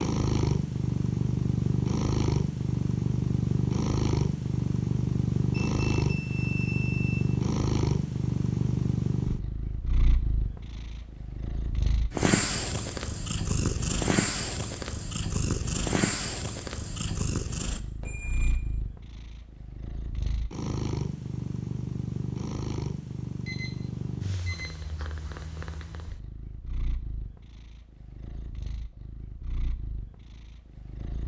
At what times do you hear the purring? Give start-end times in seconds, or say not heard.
0.0-31.2.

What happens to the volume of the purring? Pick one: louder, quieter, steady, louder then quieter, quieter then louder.
quieter.